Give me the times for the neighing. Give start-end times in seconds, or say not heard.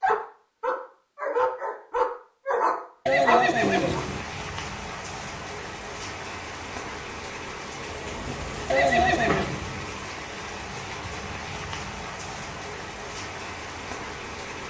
3.0-4.2, 8.7-9.4.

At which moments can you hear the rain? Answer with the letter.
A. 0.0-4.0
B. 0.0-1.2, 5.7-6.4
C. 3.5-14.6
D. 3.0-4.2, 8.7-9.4
C.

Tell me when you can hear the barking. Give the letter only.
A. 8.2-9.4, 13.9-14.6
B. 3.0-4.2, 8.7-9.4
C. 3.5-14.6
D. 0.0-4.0
D.